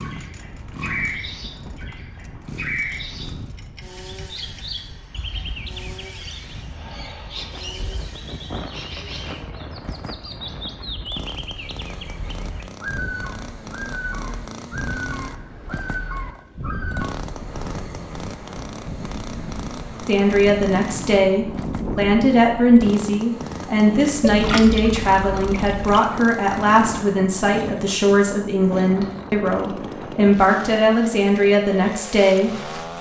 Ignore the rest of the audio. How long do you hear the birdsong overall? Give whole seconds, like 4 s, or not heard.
17 s.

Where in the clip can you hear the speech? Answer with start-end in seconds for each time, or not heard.
20.1-32.9.